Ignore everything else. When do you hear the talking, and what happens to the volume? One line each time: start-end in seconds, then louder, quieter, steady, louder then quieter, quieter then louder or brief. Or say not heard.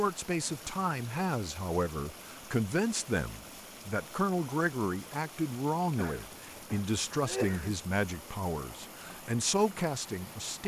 0.0-10.6 steady.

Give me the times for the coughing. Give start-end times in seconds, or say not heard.
6.0-7.8.